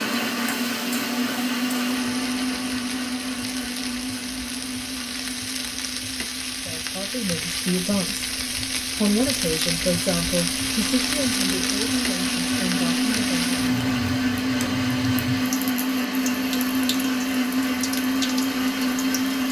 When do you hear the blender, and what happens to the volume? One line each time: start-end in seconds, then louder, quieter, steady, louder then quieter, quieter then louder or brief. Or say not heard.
0.0-19.4 quieter then louder.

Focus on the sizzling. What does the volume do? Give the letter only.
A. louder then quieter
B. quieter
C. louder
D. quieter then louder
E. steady
A.